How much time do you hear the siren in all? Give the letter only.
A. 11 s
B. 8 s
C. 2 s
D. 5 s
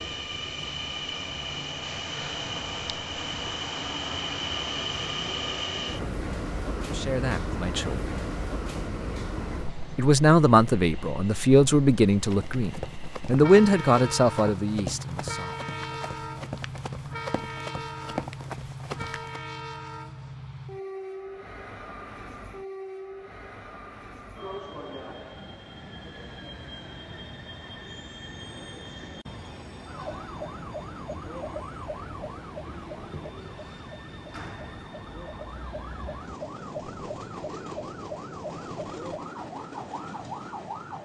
A.